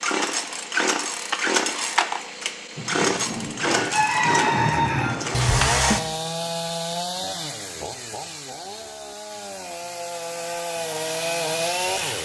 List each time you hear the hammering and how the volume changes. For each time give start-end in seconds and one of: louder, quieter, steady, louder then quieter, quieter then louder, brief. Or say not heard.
not heard.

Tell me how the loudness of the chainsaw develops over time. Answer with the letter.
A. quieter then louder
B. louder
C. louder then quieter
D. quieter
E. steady
A.